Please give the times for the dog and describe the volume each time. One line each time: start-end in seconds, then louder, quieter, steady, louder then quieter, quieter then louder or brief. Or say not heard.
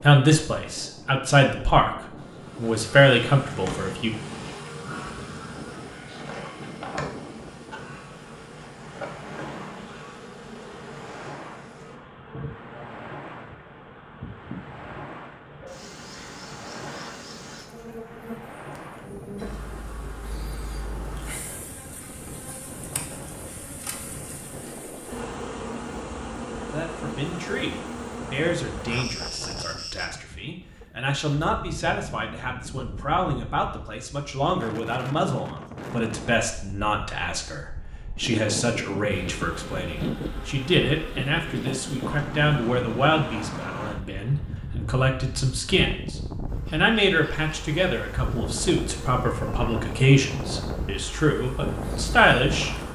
not heard.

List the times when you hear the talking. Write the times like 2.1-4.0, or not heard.
0.0-4.1, 26.7-52.7.